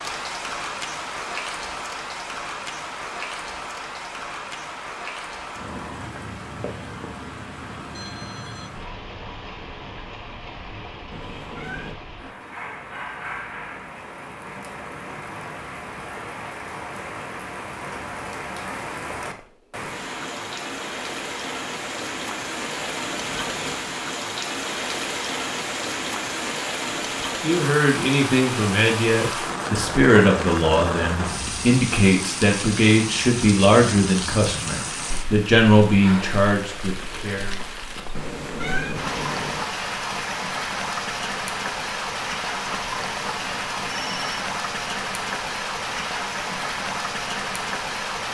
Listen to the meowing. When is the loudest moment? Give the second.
39 s.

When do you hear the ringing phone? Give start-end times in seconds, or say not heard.
7.9-8.7, 19.2-19.9, 43.4-44.5.